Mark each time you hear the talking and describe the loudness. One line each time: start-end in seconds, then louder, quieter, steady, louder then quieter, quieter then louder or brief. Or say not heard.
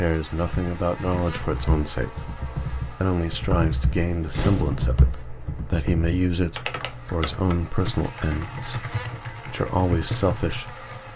0.0-10.8 steady.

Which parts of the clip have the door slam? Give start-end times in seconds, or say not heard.
4.3-4.8.